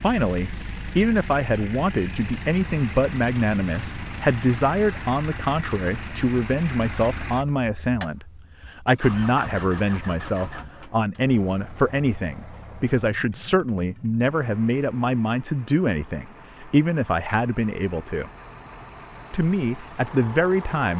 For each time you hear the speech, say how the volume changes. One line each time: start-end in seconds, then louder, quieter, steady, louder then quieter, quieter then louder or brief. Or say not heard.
0.0-18.3 steady
19.3-20.9 brief.